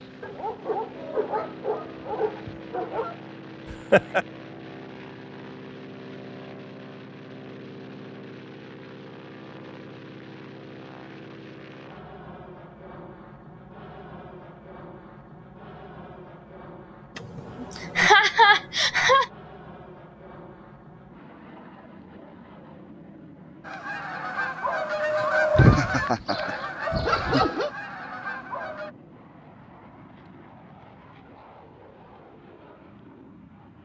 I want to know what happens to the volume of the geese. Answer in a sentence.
The volume of the geese goes up, then down.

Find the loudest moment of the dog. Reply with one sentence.
The volume of the dog peaks at 27 seconds.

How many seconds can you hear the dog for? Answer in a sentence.
The dog can be heard for 5 seconds in total.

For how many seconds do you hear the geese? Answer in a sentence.
The geese can be heard for 5 seconds in total.